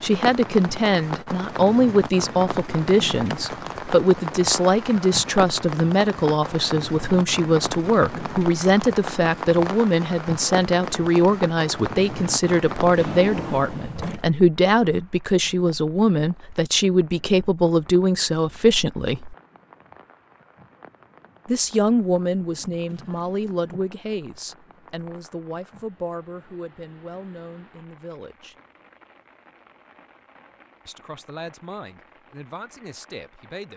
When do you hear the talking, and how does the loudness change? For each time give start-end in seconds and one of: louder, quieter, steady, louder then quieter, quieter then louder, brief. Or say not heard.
0.0-19.4 steady
21.4-28.6 quieter
30.9-33.7 brief.